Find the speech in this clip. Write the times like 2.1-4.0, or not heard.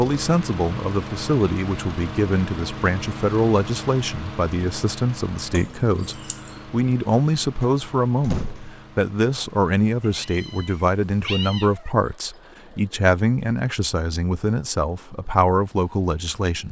0.0-16.6.